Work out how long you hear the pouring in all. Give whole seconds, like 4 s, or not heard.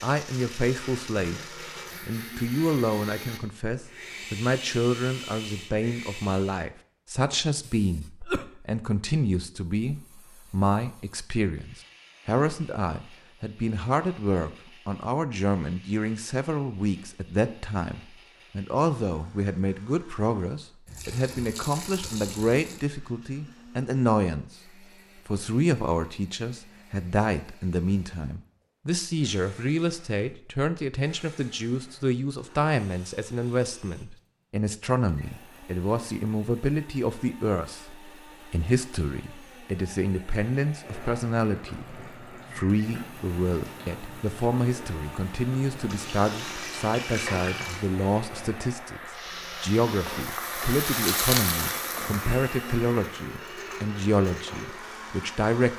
4 s.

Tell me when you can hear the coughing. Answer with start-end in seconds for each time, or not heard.
7.6-8.6.